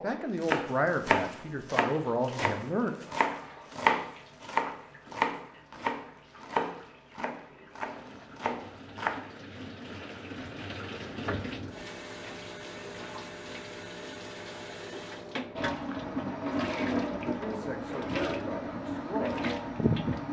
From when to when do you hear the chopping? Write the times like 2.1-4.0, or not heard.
0.4-9.2.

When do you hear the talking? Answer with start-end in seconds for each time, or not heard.
0.0-3.0, 17.2-19.4.